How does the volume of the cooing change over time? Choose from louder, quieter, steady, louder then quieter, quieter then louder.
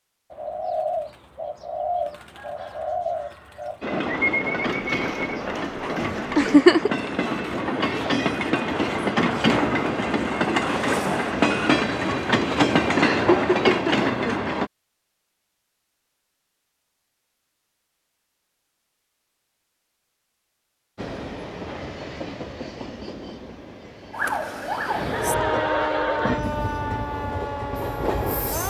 quieter.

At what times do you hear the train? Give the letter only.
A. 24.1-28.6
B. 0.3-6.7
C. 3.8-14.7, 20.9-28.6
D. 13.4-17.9
C.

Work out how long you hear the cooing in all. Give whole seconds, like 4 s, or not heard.
6 s.